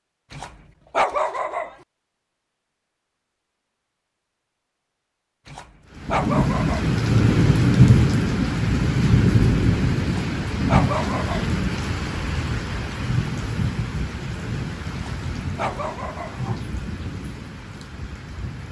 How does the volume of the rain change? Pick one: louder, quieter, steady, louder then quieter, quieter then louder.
quieter.